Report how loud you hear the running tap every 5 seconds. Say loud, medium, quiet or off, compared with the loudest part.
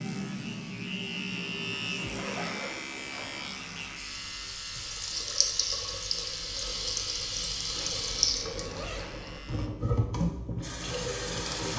medium, loud, loud.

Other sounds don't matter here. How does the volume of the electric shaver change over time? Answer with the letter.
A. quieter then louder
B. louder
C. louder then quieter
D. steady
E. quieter
E.